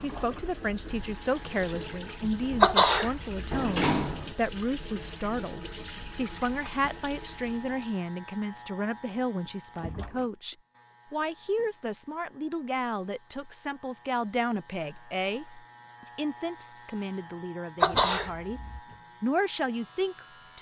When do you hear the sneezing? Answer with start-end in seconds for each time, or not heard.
2.6-3.6, 17.8-18.8.